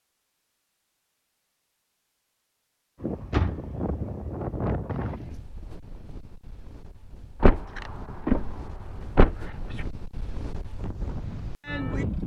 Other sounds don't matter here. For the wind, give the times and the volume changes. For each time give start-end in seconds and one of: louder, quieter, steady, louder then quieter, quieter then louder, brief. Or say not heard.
3.0-12.2 quieter then louder.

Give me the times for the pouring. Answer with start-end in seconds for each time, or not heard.
not heard.